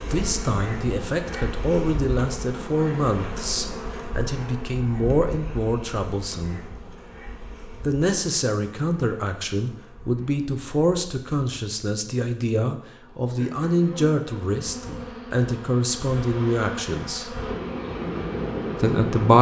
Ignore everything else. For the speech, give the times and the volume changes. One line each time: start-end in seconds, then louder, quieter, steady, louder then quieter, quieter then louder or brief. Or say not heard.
0.0-6.6 steady
7.8-17.4 steady
18.8-19.3 brief.